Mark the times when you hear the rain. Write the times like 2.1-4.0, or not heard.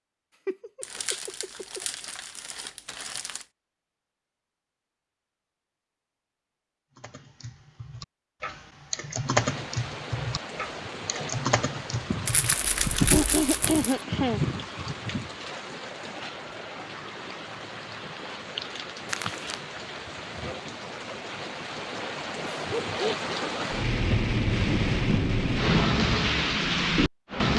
9.3-27.5.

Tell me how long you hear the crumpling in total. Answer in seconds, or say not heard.
5 s.